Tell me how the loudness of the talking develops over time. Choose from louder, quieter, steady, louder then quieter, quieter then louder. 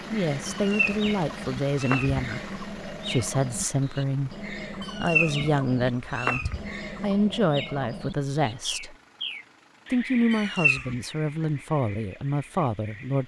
steady.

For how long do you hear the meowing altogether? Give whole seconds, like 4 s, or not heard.
4 s.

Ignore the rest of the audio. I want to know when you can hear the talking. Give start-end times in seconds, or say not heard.
0.1-8.9, 9.9-13.2.